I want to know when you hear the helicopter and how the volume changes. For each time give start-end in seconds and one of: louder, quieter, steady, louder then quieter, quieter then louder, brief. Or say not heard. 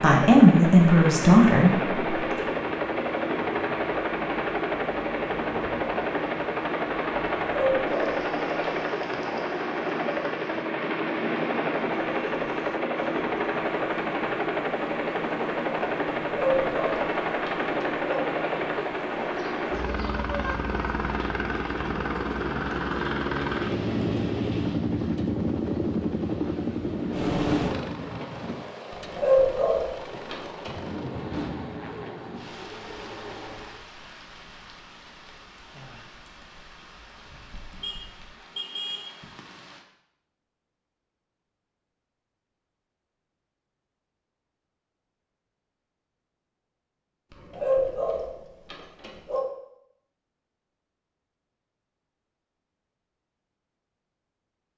0.0-33.9 quieter.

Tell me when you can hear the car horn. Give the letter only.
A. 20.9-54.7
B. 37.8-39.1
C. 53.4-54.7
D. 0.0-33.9
B.